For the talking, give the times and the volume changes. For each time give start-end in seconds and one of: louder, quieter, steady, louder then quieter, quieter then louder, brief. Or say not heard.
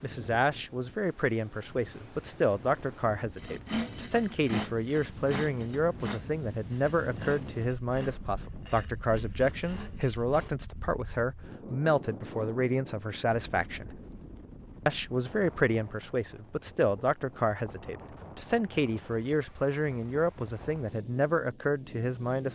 0.0-14.0 steady
14.8-22.5 steady.